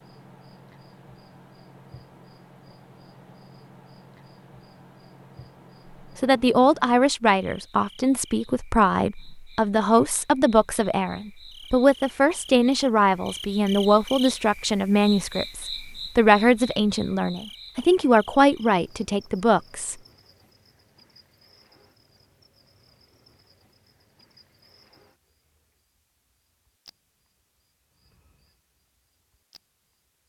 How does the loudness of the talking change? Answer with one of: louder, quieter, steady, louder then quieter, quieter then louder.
steady.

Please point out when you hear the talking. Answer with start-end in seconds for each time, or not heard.
6.2-19.9.